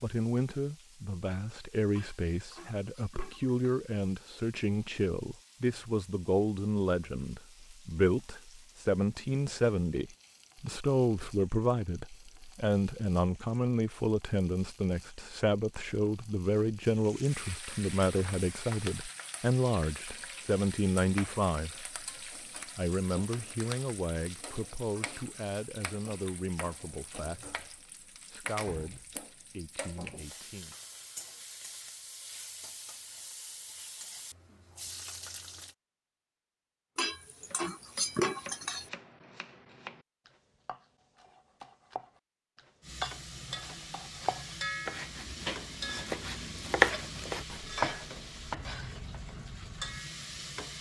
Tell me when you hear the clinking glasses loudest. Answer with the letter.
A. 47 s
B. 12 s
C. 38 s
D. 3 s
C.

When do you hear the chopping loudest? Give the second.
47 s.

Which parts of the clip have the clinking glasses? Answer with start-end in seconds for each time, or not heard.
1.9-3.6, 37.0-38.9.